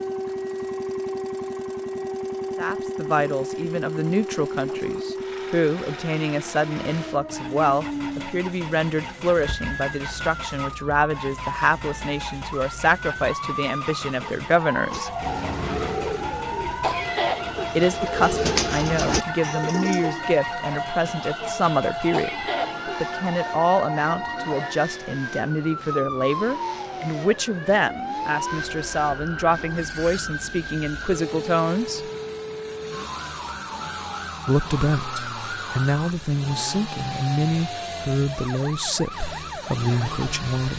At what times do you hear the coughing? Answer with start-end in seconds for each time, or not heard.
16.8-17.7, 22.1-23.0.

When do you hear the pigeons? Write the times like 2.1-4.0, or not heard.
14.8-20.2.